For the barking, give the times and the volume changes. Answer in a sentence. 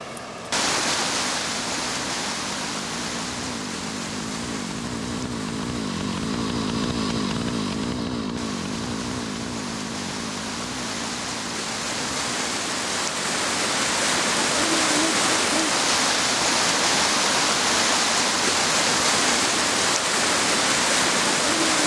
The barking can't be heard in this clip.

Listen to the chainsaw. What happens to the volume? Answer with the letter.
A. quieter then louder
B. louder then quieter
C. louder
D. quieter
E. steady
B.